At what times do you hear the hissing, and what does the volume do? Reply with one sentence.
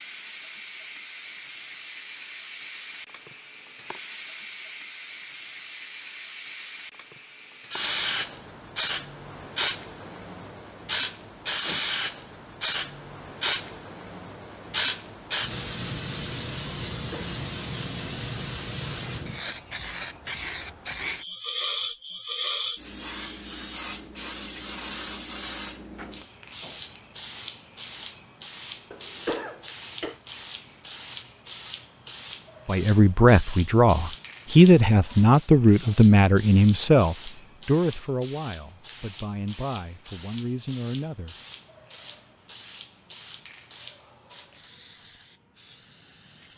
You can hear the hissing from 0.0 to 46.5 s, getting quieter.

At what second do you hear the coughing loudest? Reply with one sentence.
The volume of the coughing peaks at 29 seconds.